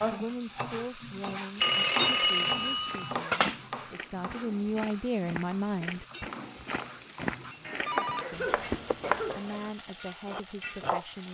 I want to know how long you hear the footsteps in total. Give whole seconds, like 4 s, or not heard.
7 s.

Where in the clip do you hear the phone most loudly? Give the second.
2 s.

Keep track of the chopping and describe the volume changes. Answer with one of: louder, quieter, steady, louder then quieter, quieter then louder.
quieter then louder.